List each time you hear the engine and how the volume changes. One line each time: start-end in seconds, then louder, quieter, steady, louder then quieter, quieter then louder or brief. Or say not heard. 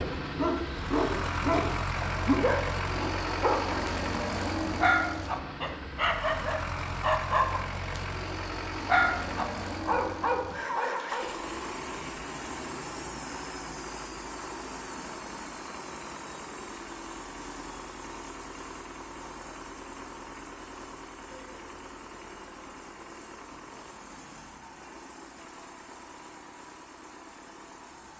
0.0-28.1 quieter.